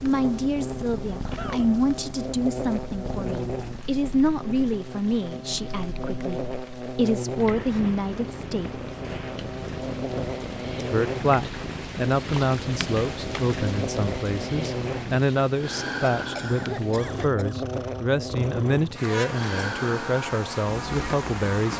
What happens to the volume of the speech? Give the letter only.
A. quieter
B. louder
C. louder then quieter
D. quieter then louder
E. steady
E.